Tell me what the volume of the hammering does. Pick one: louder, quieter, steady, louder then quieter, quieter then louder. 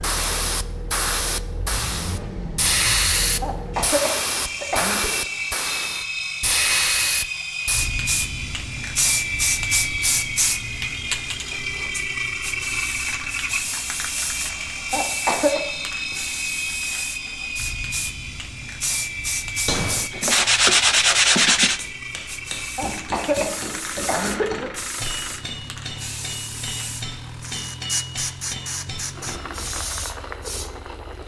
steady.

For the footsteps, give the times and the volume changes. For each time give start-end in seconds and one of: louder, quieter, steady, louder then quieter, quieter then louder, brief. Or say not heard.
not heard.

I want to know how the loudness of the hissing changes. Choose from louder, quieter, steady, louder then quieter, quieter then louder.
quieter.